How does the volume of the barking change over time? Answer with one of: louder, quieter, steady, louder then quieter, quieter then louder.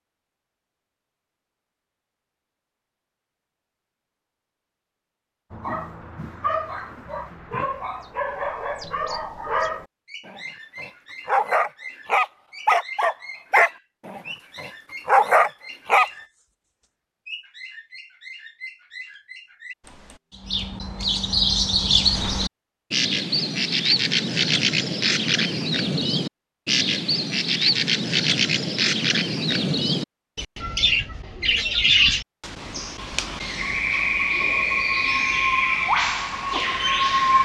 louder.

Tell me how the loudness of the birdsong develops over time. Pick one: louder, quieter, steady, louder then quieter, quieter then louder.
louder.